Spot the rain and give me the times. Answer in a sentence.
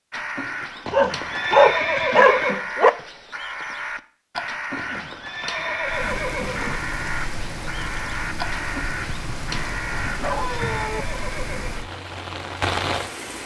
You can hear the rain from 5.8 to 13.4 s.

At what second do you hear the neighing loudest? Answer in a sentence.
The volume of the neighing peaks at 2 seconds.